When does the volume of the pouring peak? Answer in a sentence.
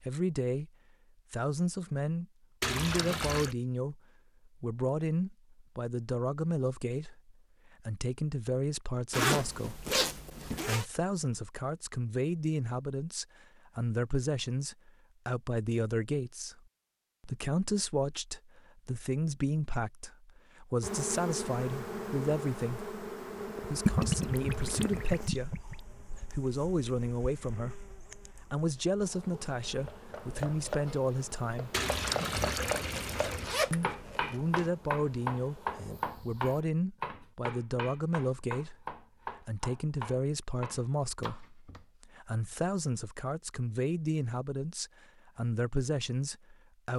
The volume of the pouring peaks at 24 seconds.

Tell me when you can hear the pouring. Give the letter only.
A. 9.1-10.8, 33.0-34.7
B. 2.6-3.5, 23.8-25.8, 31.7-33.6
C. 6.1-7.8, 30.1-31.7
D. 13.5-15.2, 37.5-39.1
B.